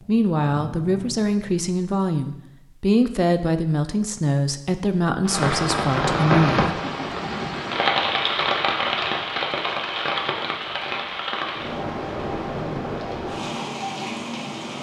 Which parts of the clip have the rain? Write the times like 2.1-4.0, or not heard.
5.2-14.7.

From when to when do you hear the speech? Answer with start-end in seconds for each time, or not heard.
0.1-6.7.